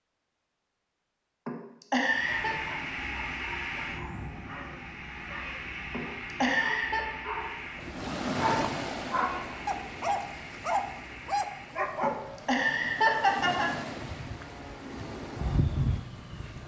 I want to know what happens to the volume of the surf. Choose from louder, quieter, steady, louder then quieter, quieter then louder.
quieter then louder.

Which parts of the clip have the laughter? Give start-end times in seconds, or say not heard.
1.4-2.5, 5.9-7.0, 12.0-13.7.